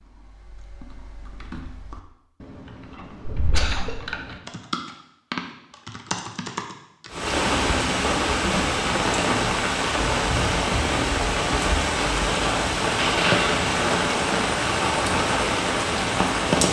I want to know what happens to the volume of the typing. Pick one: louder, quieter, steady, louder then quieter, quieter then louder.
louder.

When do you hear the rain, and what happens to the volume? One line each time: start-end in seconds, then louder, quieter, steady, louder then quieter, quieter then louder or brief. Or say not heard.
7.1-16.6 steady.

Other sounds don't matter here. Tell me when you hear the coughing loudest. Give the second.
13 s.